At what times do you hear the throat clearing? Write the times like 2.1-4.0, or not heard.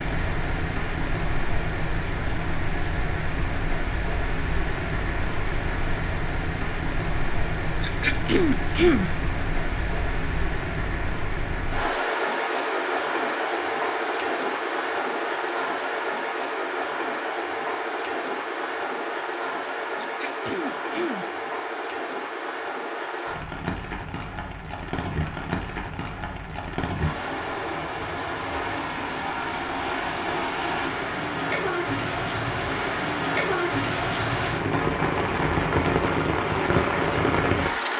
7.8-9.1, 20.0-21.3.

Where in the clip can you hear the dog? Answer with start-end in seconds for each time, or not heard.
not heard.